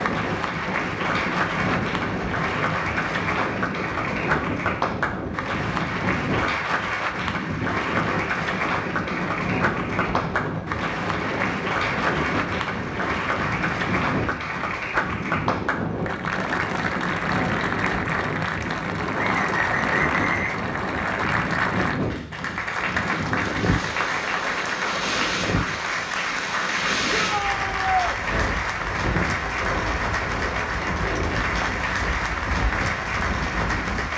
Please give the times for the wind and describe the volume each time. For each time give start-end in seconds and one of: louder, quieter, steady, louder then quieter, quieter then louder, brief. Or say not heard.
0.0-34.1 steady.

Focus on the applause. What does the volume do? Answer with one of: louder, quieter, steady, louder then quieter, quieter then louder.
steady.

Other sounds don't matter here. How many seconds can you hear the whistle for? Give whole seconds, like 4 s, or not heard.
2 s.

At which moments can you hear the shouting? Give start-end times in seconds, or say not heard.
27.1-28.2.